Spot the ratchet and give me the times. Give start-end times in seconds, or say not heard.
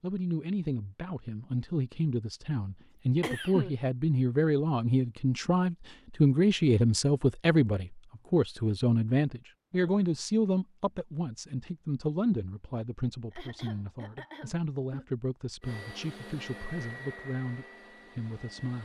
not heard.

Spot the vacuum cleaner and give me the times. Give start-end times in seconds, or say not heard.
15.6-18.8.